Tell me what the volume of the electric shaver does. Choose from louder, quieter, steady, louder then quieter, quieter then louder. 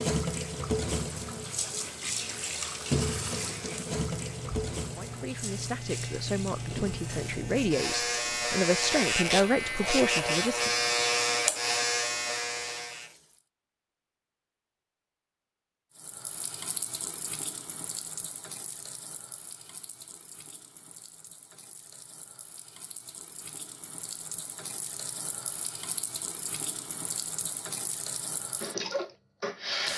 louder.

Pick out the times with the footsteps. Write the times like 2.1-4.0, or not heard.
not heard.